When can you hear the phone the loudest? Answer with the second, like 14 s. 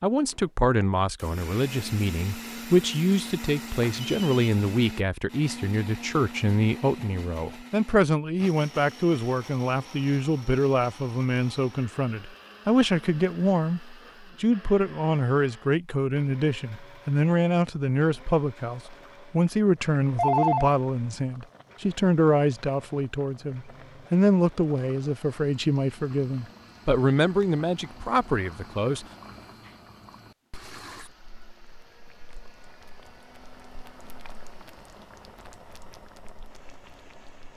20 s.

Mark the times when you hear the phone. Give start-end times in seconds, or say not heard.
3.8-4.7, 19.9-20.8.